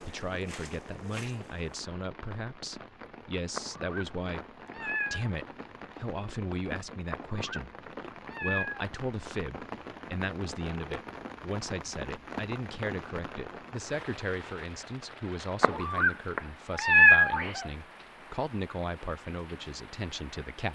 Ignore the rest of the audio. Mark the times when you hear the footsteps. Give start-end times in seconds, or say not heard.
0.0-1.8.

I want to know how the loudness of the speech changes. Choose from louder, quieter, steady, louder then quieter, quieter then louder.
steady.